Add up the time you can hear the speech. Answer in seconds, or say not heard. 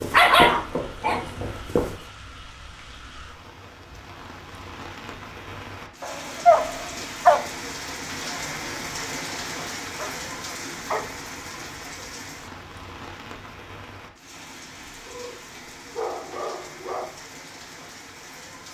not heard.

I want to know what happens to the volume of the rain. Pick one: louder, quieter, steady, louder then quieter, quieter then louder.
louder then quieter.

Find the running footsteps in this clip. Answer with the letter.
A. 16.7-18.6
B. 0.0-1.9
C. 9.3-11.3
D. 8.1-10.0
B.